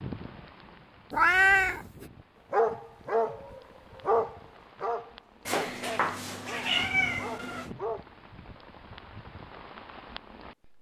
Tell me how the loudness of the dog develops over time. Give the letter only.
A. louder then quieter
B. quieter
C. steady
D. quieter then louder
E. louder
B.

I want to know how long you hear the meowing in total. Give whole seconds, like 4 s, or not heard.
3 s.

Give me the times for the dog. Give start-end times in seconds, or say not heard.
2.5-8.1.